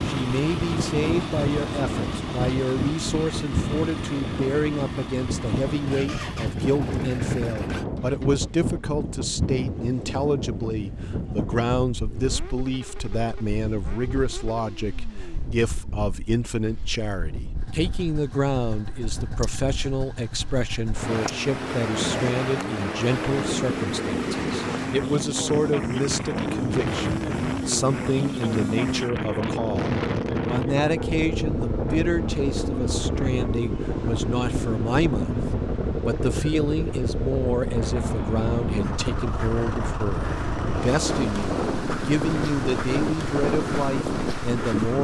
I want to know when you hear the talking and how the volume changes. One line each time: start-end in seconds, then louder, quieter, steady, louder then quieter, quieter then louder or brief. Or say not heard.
0.1-44.9 steady.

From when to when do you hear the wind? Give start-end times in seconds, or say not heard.
0.0-44.9.